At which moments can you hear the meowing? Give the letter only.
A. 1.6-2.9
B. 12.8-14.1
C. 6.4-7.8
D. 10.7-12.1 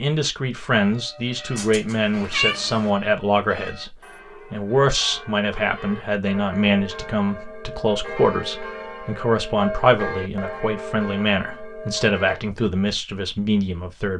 A.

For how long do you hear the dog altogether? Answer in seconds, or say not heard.
not heard.